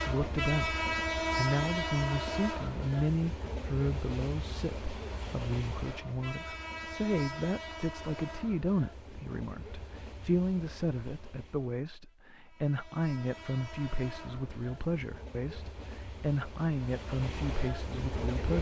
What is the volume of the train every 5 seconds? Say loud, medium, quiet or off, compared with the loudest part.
loud, medium, quiet, medium.